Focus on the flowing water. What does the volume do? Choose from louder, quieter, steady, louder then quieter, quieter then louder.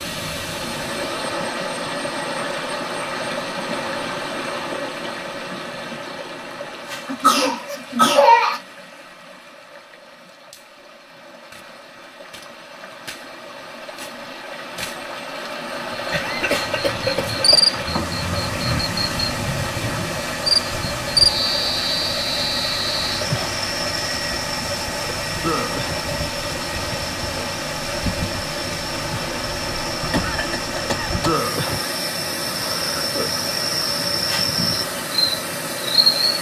quieter then louder.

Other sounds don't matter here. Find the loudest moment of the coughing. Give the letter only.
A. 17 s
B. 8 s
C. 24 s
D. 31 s
B.